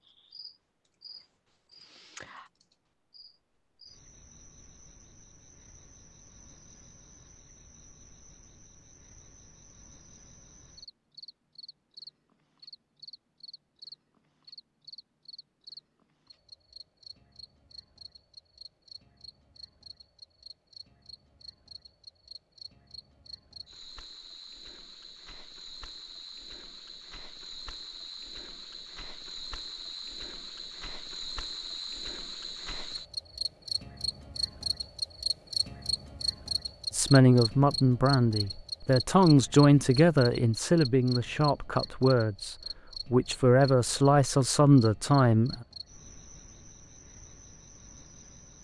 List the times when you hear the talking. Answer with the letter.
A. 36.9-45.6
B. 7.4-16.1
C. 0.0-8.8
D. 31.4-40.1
A.